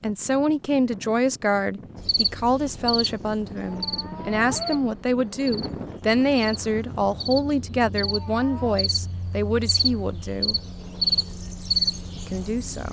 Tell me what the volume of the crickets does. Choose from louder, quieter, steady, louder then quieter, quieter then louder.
louder.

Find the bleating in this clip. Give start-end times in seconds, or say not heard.
not heard.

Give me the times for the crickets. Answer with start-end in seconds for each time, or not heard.
1.9-12.8.